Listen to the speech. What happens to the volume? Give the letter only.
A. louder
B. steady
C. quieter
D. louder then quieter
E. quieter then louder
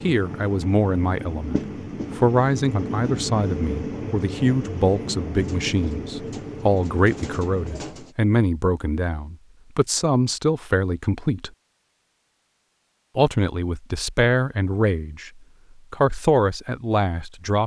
B.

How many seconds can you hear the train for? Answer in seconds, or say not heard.
8 s.